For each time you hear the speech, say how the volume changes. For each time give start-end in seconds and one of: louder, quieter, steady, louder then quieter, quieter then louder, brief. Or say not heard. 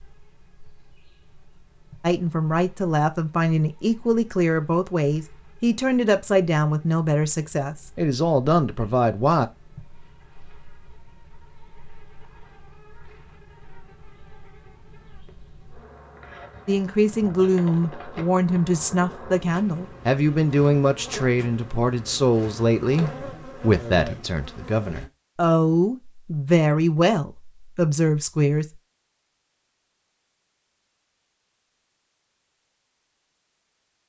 2.0-9.4 steady
16.6-28.6 steady.